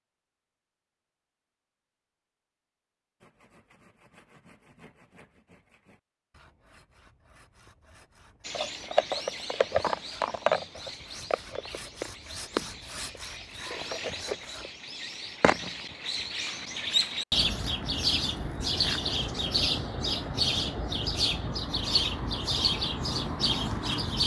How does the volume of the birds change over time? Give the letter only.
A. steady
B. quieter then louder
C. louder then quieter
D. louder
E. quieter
B.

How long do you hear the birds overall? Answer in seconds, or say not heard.
16 s.